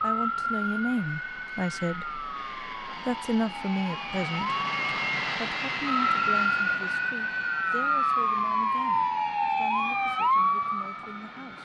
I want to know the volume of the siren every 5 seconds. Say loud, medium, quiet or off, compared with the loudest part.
medium, loud, loud.